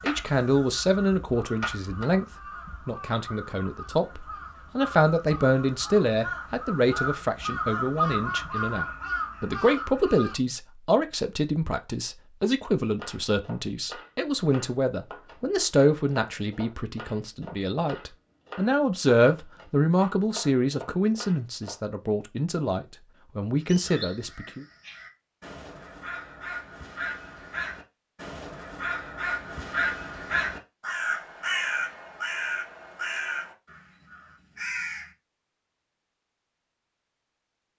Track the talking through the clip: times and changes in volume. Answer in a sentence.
The talking can be heard briefly from 0.0 to 2.2 s; and from 2.9 to 24.6 s, at a steady volume.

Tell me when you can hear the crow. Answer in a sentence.
You can hear the crow from 0.0 to 10.3 s and from 23.6 to 35.1 s.